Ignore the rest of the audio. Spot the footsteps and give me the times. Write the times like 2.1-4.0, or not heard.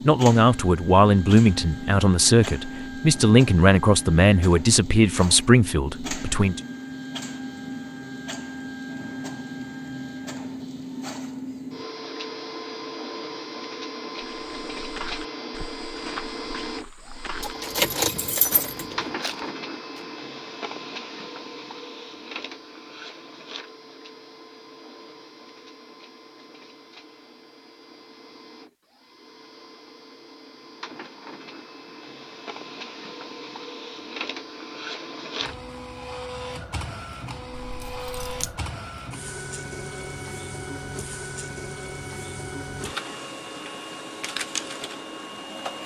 14.2-20.1.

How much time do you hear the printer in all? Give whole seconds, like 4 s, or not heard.
46 s.